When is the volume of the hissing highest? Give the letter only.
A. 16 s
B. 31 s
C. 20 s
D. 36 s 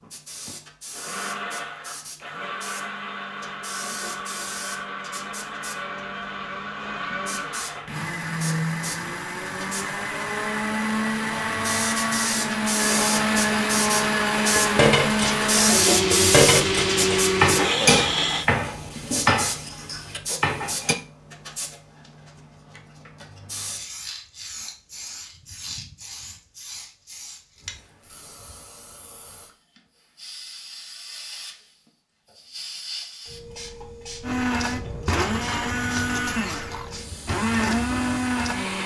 A.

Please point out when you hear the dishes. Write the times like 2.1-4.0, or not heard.
14.6-20.9.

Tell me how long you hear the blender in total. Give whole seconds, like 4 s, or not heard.
23 s.